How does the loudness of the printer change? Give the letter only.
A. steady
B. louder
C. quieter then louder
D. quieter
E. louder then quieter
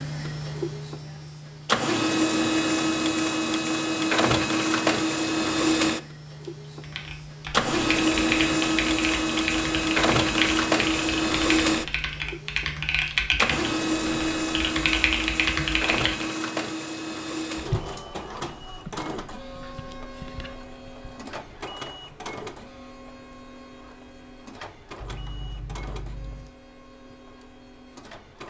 D.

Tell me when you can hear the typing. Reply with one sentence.
You can hear the typing from 6.8 to 16.2 s.